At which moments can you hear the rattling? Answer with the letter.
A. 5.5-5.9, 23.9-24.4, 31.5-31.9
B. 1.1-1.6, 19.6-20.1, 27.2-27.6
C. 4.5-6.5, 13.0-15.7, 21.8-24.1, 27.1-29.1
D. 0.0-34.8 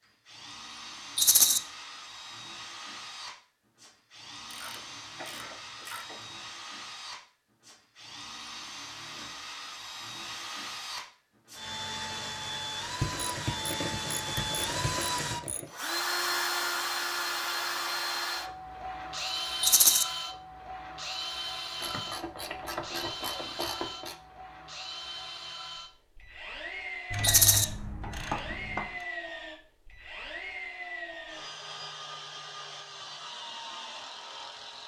B.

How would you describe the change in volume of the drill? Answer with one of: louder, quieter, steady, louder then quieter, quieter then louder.
louder then quieter.